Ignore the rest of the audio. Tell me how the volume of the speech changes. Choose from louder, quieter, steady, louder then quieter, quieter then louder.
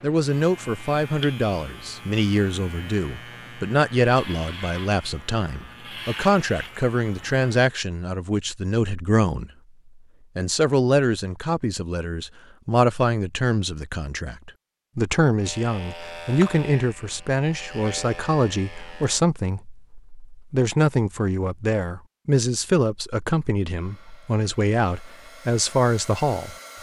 steady.